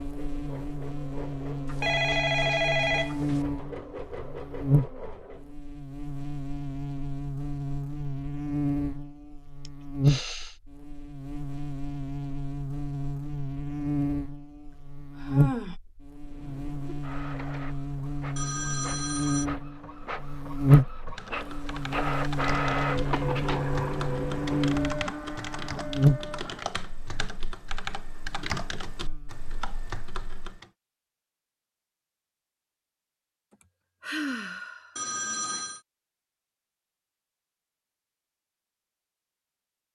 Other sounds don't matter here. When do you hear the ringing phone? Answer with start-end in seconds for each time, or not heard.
1.6-3.4, 18.4-19.5, 35.0-35.8.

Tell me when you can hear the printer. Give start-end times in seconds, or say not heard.
0.0-5.5, 16.2-26.8.